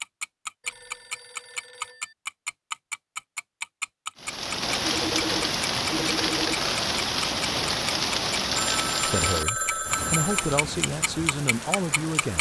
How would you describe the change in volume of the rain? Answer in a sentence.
The volume of the rain goes down.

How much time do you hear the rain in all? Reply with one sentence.
The rain can be heard for 8 seconds in total.